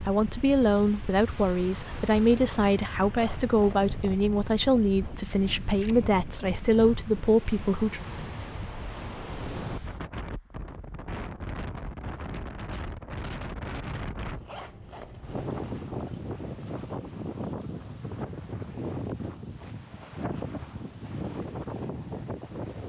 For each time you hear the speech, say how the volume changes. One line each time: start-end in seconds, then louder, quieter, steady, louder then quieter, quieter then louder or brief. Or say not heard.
0.0-8.0 steady.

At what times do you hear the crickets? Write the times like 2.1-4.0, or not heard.
not heard.